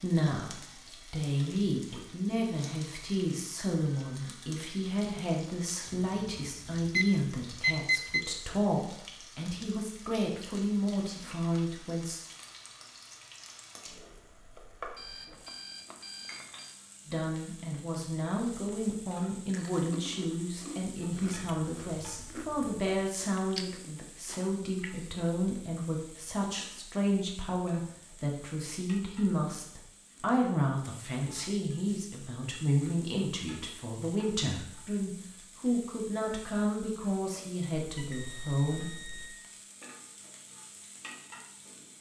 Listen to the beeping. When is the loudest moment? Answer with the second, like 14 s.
8 s.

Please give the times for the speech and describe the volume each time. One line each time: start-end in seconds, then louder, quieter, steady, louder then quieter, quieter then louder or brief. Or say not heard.
0.0-12.2 steady
17.1-38.9 steady.